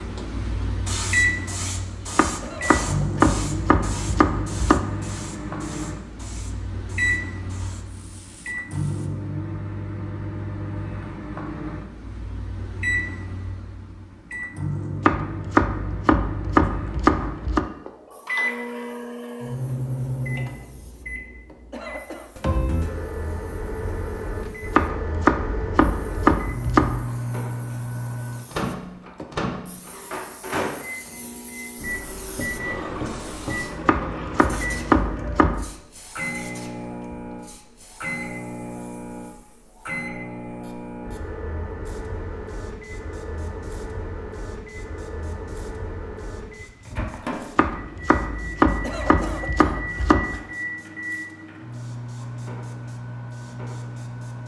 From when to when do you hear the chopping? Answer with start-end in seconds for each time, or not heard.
2.1-4.8, 15.1-17.6, 24.8-27.1, 33.9-35.6, 47.5-50.4.